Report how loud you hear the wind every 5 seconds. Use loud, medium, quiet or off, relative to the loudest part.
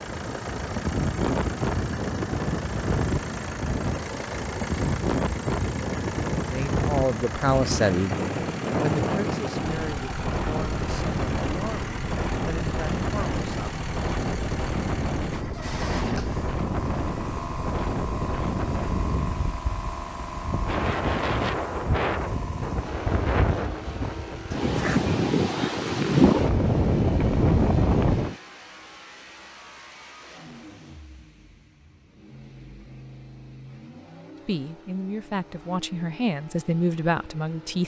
medium, medium, medium, medium, medium, loud, off, off.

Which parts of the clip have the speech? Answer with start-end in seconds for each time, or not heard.
6.5-13.7, 34.5-37.8.